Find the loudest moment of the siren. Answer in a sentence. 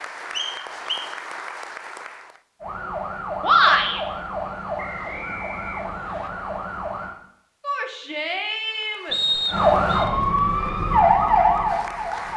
The volume of the siren peaks at 11 seconds.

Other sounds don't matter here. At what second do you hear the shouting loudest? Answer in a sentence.
The volume of the shouting peaks at 4 seconds.